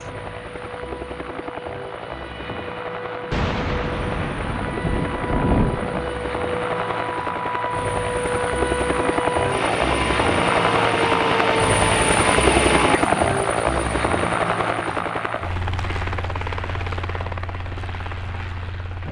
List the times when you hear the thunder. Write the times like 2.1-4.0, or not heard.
3.3-6.1.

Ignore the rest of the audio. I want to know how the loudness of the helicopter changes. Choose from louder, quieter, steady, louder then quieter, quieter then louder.
louder then quieter.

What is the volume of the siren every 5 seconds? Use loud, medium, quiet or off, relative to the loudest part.
quiet, medium, loud, off.